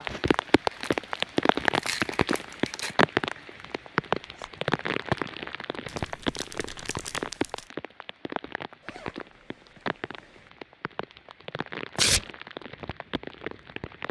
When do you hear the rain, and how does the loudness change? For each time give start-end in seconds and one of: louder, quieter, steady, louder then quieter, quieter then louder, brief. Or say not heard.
0.0-14.0 quieter.